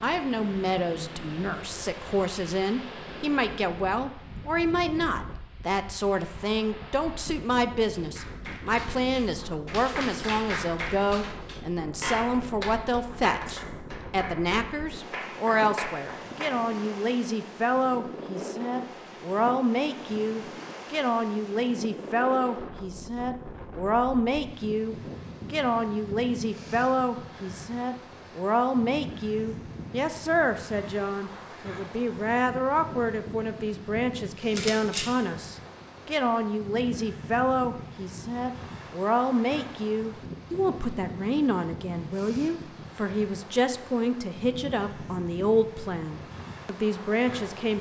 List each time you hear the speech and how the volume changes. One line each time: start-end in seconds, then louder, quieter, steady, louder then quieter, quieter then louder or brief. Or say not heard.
0.0-47.7 steady.